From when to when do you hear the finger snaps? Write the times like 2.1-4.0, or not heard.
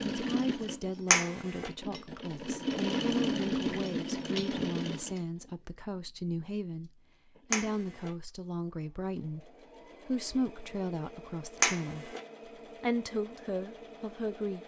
1.1-1.7, 7.5-8.1, 11.6-12.2.